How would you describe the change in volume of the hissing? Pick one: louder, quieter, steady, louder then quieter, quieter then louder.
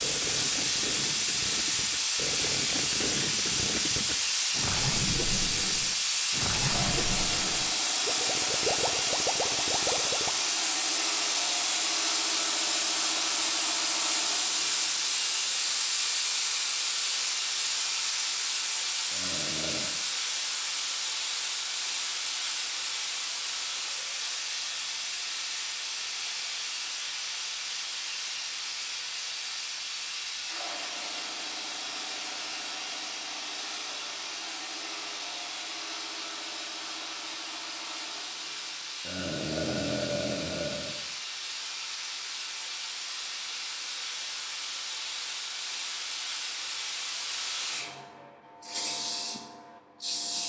quieter.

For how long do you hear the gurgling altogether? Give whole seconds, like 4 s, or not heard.
10 s.